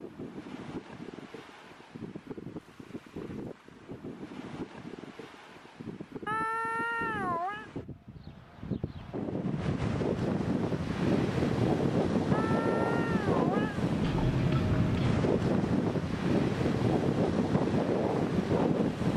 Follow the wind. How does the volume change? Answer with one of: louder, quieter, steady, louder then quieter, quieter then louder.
louder.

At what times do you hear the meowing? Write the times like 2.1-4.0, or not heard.
6.2-7.7, 12.3-13.8.